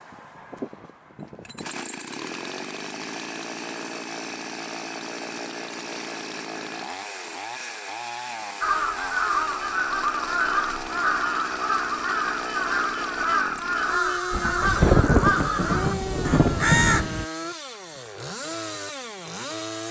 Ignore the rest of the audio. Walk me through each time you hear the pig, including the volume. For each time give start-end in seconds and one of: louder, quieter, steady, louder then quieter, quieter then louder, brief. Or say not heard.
not heard.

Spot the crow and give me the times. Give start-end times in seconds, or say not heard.
8.6-17.2.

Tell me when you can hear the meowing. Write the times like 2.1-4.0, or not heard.
not heard.